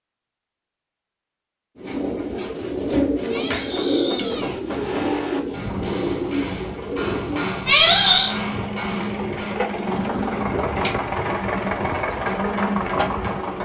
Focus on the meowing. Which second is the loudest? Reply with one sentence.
The volume of the meowing peaks at 8 seconds.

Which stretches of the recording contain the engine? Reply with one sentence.
You can hear the engine from 4.7 to 13.6 s.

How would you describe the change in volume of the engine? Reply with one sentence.
The loudness of the engine goes up.